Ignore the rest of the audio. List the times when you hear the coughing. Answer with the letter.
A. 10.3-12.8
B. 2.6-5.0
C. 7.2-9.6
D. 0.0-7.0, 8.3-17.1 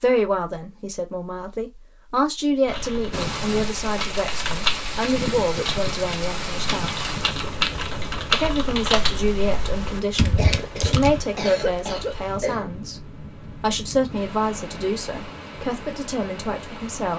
A.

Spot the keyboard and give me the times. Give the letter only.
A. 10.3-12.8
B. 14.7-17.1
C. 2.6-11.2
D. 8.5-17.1
C.